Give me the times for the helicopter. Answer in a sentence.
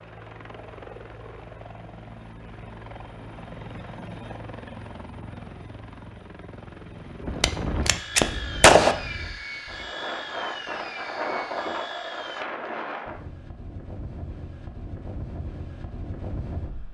You can hear the helicopter from 0.0 to 12.4 s.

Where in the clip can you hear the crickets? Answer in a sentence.
The crickets can't be heard in this clip.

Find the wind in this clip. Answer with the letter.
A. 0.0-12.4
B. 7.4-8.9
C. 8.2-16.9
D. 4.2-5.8
C.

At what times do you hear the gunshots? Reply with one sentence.
The gunshots can be heard from 7.4 to 8.9 s.